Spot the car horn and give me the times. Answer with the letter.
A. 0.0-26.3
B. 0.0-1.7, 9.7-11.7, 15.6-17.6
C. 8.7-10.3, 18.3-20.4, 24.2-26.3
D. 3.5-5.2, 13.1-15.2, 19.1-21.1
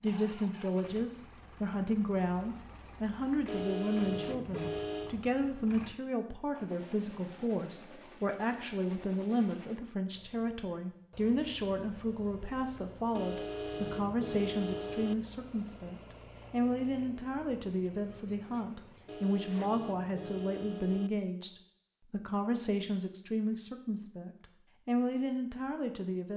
D.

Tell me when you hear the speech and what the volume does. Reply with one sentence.
The speech can be heard from 0.0 to 26.3 s, at a steady volume.